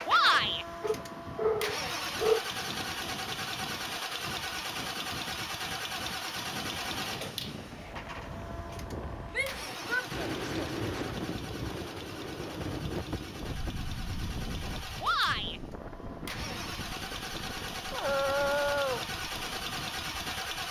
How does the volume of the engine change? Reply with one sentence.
The volume of the engine goes down, then up.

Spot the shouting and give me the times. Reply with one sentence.
The shouting can be heard from 0.1 to 0.7 s, from 9.3 to 10.1 s and from 15.0 to 15.6 s.